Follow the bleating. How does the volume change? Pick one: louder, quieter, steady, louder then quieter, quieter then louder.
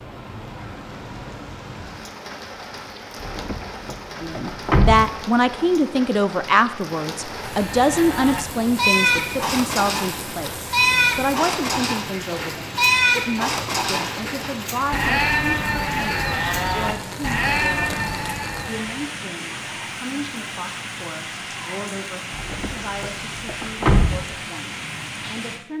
steady.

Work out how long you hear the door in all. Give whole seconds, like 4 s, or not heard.
4 s.